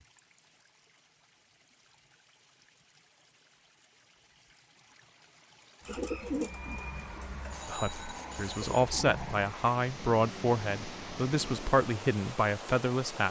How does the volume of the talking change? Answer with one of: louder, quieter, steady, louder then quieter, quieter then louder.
steady.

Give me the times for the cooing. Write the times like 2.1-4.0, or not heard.
5.8-11.8.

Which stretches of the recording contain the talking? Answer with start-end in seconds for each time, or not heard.
7.7-13.2.